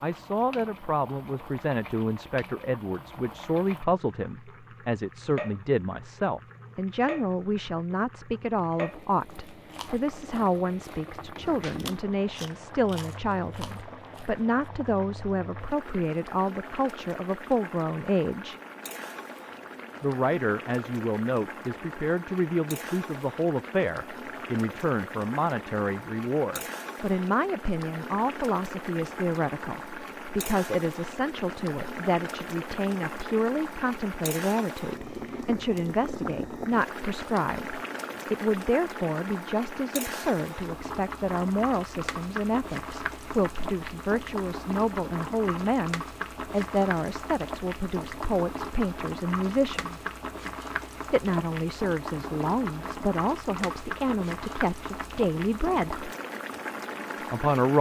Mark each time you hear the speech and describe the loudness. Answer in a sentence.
You can hear the speech from 0.0 to 18.6 s, at a steady volume; from 20.0 to 50.0 s, at a steady volume; from 51.1 to 56.0 s, at a steady volume; and briefly from 57.1 to 57.7 s.